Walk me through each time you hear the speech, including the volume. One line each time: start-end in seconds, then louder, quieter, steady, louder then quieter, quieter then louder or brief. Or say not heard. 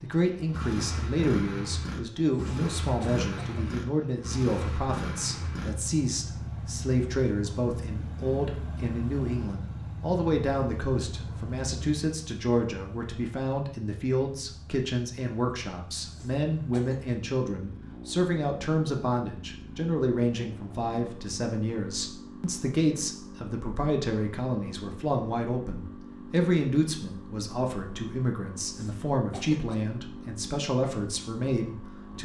0.0-32.1 steady.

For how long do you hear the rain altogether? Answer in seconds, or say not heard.
not heard.